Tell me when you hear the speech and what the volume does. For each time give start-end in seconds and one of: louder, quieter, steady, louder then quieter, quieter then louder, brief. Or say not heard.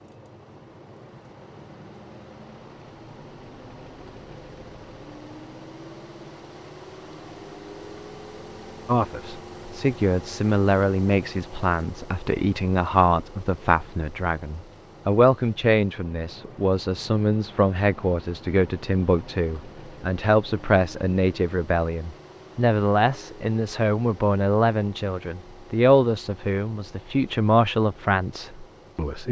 8.8-29.2 steady.